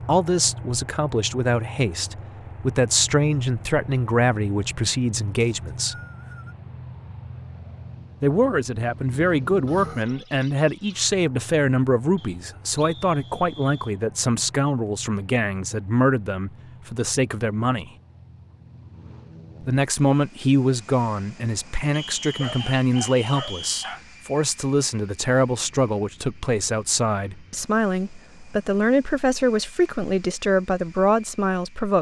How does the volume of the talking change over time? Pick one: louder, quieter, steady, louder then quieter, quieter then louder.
steady.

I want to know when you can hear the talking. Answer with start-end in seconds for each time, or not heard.
0.1-6.0, 8.2-17.9, 19.6-31.9.